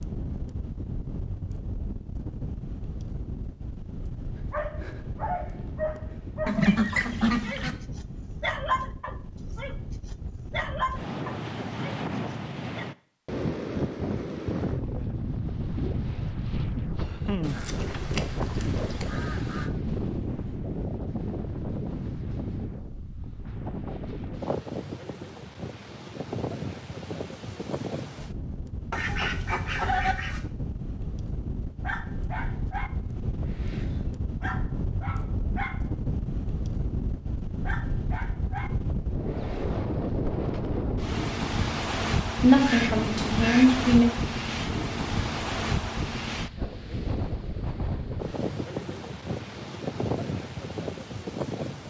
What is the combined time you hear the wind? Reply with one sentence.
The wind can be heard for 52 seconds in total.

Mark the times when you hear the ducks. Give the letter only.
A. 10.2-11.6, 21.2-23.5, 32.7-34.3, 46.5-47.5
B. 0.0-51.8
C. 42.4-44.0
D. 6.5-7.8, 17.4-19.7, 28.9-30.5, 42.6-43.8
D.